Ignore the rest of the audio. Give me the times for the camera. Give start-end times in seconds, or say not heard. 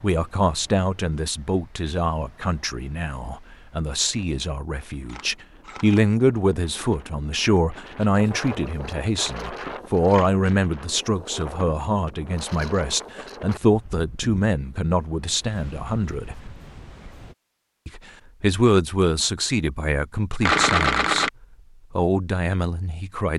5.0-6.0, 9.2-10.4, 20.4-21.3.